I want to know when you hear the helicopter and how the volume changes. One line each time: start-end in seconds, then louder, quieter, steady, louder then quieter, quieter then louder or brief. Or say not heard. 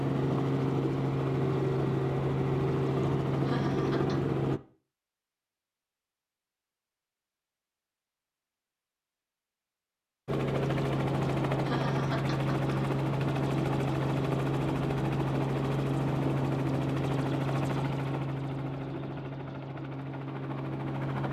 0.0-4.6 steady
10.2-21.2 quieter.